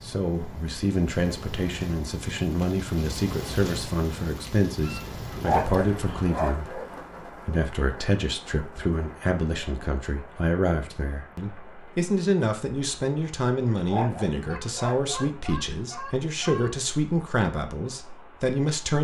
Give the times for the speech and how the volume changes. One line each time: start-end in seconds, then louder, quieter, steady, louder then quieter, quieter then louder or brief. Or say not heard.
0.0-18.9 steady.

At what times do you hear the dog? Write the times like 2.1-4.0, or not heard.
5.4-6.9, 13.8-15.3.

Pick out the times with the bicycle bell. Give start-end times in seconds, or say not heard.
not heard.